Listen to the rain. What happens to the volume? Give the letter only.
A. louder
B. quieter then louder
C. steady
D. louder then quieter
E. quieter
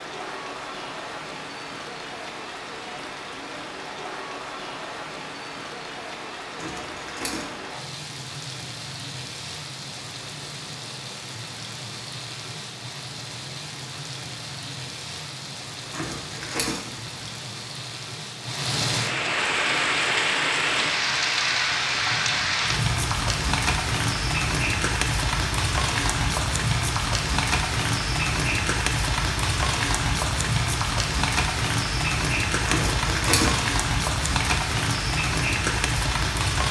A.